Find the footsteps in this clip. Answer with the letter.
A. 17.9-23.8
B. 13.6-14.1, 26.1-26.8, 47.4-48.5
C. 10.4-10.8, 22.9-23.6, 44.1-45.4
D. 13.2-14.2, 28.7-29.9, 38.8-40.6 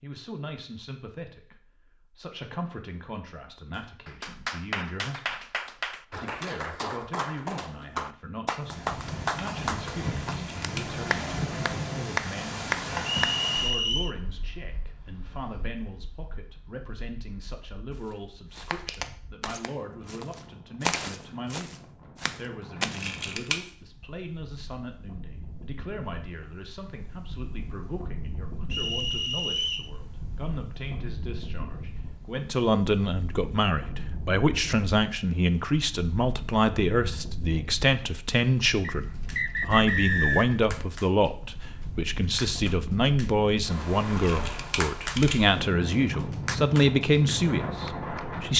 A.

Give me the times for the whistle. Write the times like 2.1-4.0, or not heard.
13.2-14.2, 28.7-29.9, 38.8-40.6.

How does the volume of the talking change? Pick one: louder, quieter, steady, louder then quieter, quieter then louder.
louder.